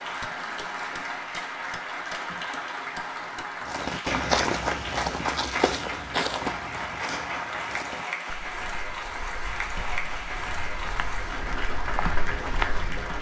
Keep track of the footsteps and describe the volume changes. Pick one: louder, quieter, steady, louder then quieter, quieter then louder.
quieter then louder.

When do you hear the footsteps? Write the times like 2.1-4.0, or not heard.
3.6-13.1.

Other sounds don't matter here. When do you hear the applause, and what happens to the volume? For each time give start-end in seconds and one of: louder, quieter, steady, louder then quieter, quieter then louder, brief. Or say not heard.
0.0-13.1 steady.